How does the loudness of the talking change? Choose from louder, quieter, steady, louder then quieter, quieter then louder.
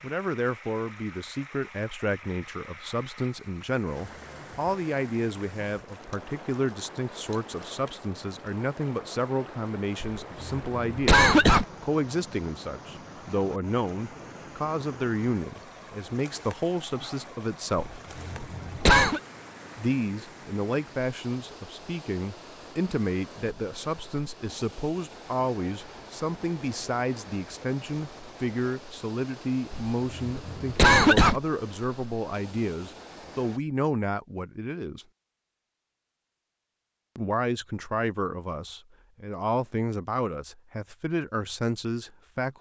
steady.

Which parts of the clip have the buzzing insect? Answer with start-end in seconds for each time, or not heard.
not heard.